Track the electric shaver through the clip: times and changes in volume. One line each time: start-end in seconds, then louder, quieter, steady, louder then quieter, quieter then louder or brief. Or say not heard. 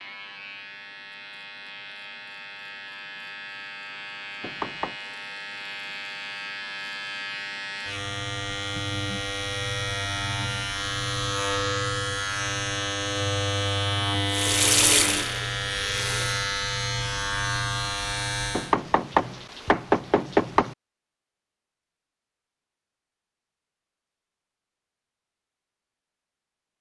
0.0-18.8 louder.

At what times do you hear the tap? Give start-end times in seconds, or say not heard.
14.3-16.4.